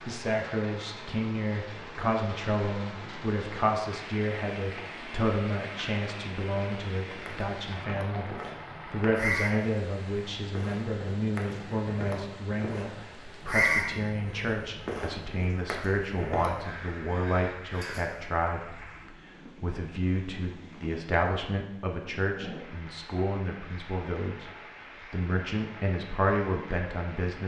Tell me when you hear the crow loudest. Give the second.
14 s.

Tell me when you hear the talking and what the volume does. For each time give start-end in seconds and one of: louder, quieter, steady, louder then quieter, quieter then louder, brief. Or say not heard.
0.0-24.5 steady
25.1-27.4 brief.